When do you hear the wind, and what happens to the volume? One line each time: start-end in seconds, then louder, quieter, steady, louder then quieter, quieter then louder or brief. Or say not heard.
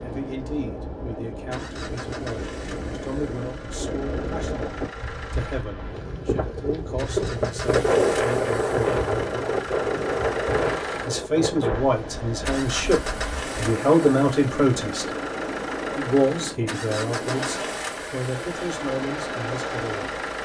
0.0-20.4 louder then quieter.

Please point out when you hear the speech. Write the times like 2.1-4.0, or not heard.
0.0-9.0, 11.1-15.1, 15.9-20.1.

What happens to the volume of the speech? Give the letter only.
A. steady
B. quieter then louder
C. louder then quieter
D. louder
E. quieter
C.